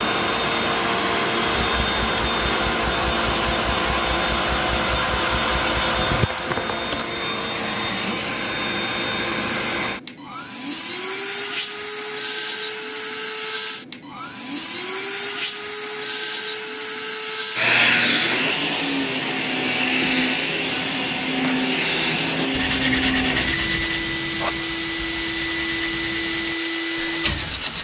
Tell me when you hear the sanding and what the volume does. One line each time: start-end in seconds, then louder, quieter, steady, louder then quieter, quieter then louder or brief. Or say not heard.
18.1-27.7 louder then quieter.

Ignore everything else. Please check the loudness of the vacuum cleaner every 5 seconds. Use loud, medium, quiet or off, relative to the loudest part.
loud, loud, medium, loud, loud, loud.